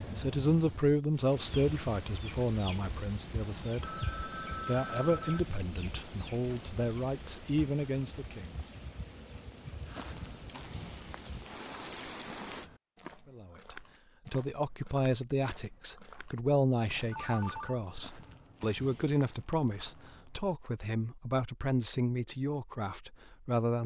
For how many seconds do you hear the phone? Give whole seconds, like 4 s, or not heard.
2 s.